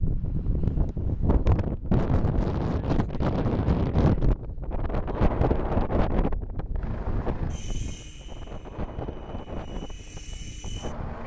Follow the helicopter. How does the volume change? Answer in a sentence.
The volume of the helicopter goes down, then up.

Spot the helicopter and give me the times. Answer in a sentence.
You can hear the helicopter from 6.8 to 11.2 s.